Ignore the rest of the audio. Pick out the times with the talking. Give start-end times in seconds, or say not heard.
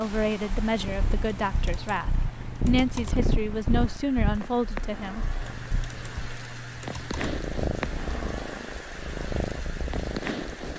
0.0-5.2.